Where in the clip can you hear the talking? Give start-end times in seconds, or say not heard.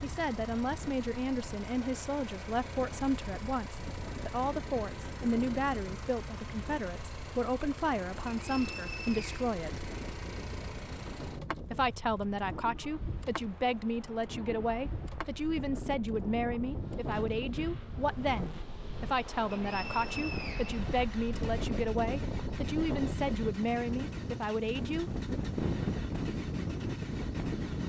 0.0-9.9, 11.7-25.1.